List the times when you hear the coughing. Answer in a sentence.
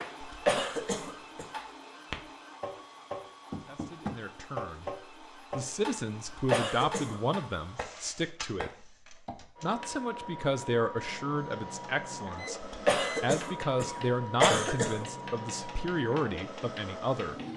The coughing can be heard from 0.2 to 1.4 s, from 6.2 to 7.2 s and from 12.6 to 15.1 s.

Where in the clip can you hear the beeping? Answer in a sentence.
You can hear the beeping from 12.3 to 13.2 s.